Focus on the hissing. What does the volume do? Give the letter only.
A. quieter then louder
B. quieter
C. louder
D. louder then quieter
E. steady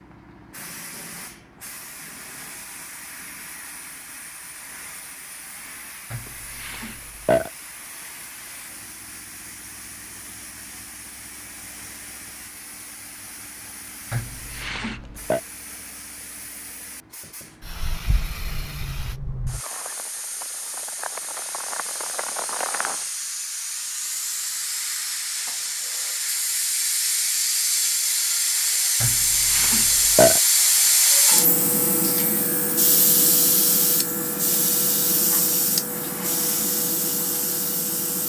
C.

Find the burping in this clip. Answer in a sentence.
You can hear the burping from 6.1 to 7.5 s, from 14.1 to 15.4 s and from 29.0 to 30.4 s.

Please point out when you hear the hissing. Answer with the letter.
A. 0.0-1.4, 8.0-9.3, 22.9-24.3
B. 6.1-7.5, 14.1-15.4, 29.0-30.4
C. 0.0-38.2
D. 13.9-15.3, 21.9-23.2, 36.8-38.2
C.